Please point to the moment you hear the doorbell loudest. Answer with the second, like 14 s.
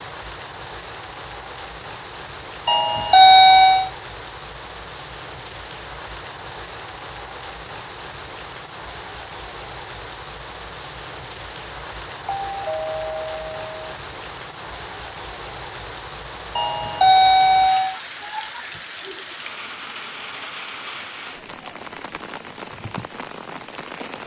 3 s.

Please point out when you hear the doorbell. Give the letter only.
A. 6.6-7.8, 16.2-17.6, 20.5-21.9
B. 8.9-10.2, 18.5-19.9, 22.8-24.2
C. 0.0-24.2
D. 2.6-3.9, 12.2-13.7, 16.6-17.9
D.